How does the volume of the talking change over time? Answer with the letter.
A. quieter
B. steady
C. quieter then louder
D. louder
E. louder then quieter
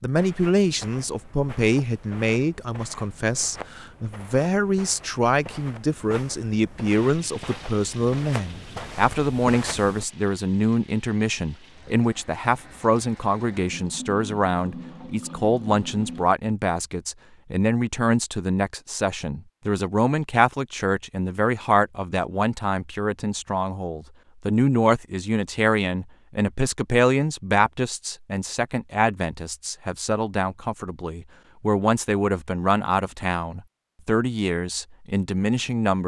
B.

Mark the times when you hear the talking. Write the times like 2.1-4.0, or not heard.
0.0-36.0.